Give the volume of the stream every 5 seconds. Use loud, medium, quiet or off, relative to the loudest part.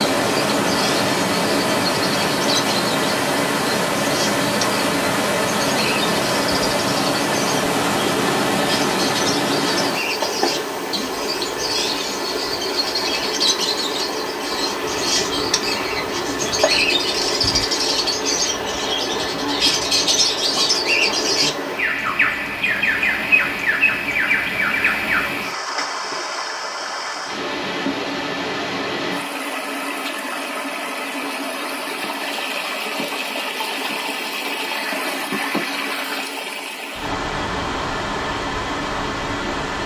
loud, loud, medium, medium, medium, medium, medium, medium.